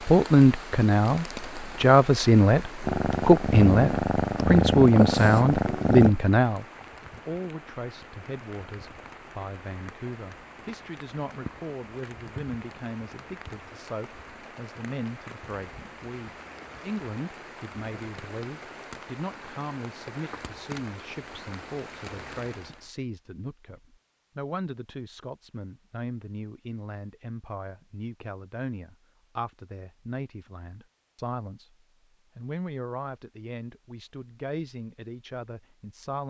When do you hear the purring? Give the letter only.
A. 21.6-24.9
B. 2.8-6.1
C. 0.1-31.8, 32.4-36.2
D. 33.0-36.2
B.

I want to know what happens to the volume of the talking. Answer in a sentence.
The loudness of the talking goes down.